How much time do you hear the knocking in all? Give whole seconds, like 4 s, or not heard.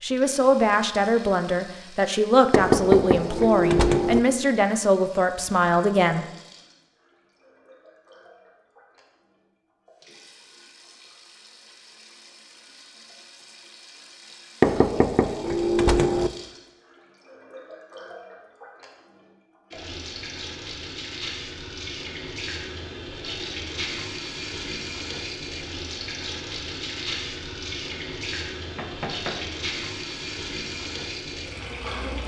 4 s.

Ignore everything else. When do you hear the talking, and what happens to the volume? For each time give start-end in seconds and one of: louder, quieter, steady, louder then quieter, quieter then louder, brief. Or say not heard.
0.0-6.2 steady.